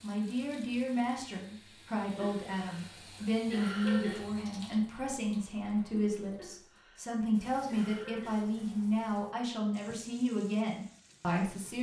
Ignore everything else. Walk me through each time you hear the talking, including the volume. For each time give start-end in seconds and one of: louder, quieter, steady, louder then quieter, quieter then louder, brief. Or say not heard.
0.0-11.7 steady.